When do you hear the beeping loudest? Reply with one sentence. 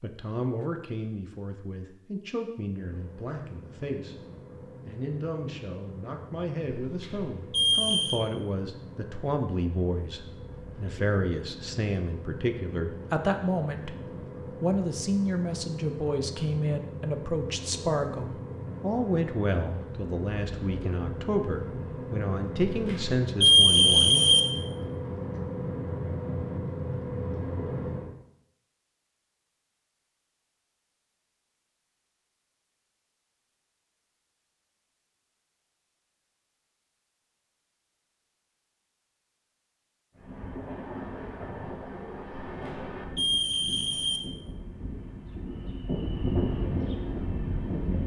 The loudest moment of the beeping is at 24 seconds.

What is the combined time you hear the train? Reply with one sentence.
The train can be heard for 33 seconds in total.